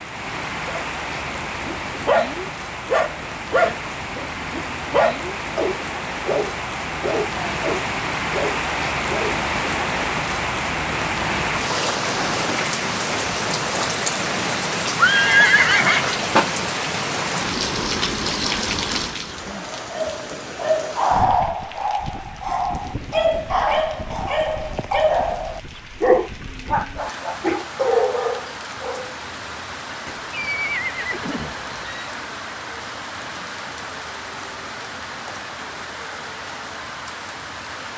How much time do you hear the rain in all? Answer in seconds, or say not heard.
38 s.